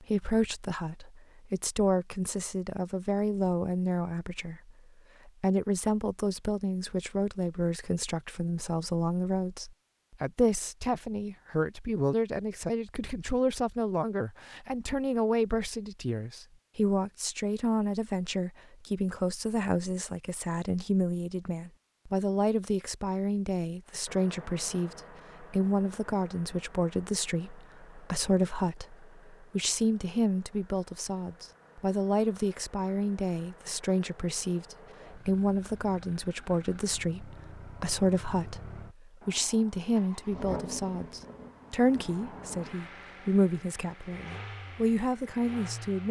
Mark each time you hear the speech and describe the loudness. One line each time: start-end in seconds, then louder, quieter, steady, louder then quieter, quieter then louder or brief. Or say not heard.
0.0-46.0 steady.